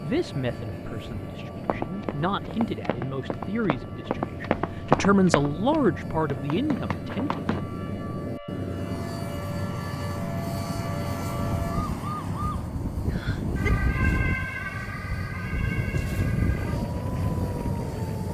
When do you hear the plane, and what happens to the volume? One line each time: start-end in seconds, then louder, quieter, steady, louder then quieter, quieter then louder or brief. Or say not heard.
0.0-18.2 louder.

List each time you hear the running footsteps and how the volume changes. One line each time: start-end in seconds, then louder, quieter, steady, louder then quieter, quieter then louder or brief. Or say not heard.
1.6-7.7 louder then quieter.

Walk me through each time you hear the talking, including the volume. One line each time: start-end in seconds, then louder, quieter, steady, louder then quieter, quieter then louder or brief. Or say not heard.
0.0-7.3 louder.